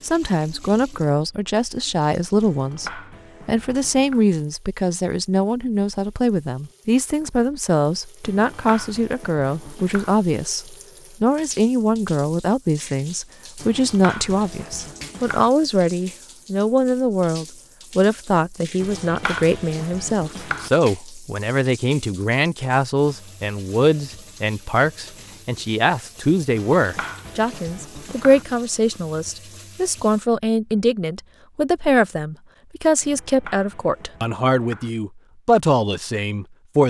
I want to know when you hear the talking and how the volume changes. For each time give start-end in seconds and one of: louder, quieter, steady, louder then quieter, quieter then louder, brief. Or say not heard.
0.0-36.8 steady.